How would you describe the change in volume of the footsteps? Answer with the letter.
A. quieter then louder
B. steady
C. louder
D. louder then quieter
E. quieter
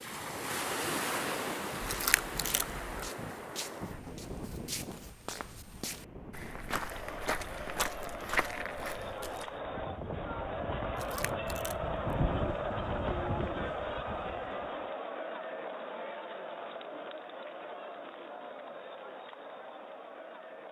C.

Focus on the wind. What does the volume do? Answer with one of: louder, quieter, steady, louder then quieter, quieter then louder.
quieter then louder.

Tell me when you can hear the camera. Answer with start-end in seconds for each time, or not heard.
1.8-3.1, 10.9-11.9.